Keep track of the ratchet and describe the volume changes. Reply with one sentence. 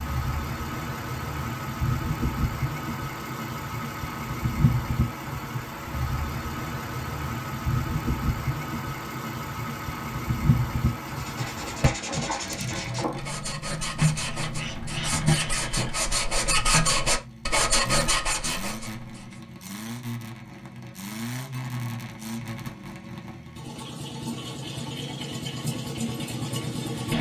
The volume of the ratchet goes up, then down.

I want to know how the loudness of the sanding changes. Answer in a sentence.
The volume of the sanding goes up.